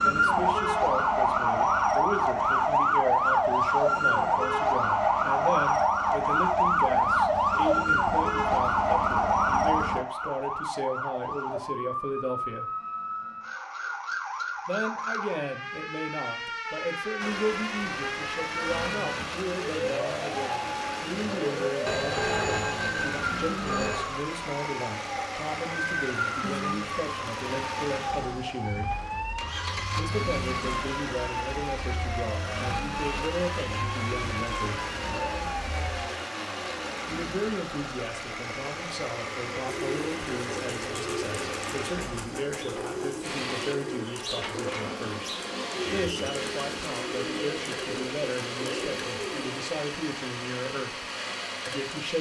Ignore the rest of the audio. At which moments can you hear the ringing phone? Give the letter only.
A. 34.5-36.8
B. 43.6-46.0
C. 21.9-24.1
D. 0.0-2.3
C.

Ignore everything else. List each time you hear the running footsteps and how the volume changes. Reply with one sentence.
The running footsteps can't be heard in this clip.